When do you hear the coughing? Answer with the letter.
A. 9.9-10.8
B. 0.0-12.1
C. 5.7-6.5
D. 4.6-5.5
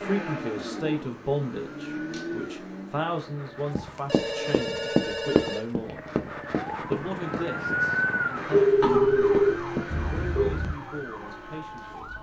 A.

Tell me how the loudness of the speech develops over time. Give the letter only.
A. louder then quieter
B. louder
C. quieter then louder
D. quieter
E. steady
D.